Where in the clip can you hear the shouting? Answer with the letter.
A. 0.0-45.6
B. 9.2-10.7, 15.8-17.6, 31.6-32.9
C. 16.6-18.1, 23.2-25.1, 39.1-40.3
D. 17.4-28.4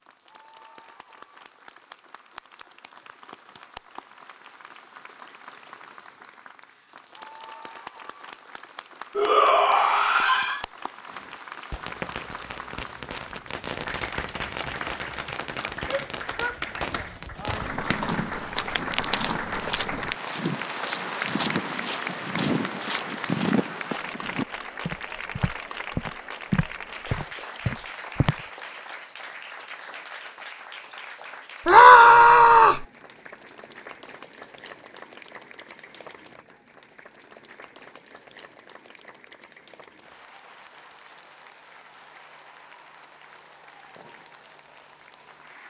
B.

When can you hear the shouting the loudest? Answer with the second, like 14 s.
32 s.